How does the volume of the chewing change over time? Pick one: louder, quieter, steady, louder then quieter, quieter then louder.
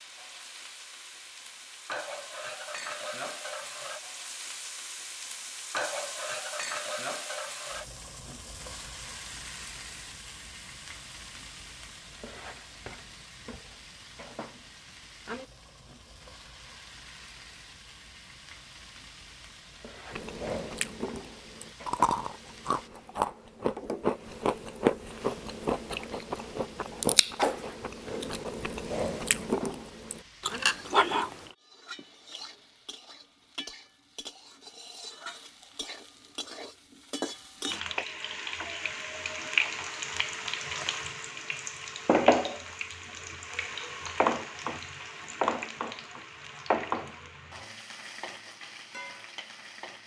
steady.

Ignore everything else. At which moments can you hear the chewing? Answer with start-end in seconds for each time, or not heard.
20.1-31.6.